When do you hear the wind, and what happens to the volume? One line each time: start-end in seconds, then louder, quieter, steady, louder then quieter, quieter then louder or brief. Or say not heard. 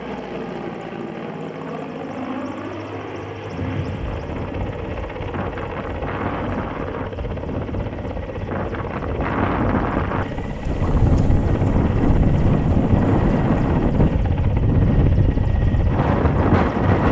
3.5-17.0 louder.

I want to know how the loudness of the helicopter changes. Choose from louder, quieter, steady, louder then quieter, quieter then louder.
steady.